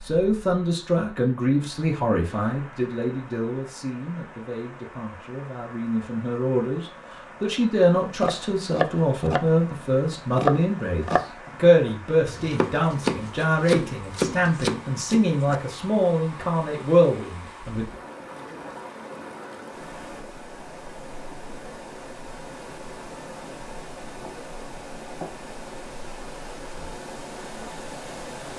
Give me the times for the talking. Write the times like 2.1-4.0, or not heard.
0.0-17.9.